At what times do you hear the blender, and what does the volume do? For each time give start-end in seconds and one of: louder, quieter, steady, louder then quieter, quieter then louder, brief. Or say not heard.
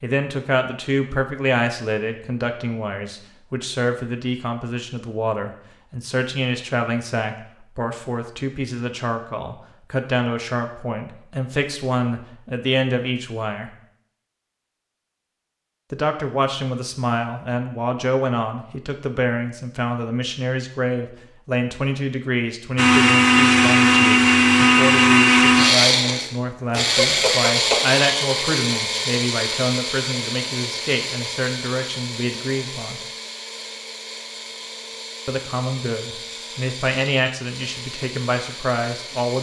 22.8-39.3 quieter.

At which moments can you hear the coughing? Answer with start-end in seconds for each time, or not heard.
26.9-27.8.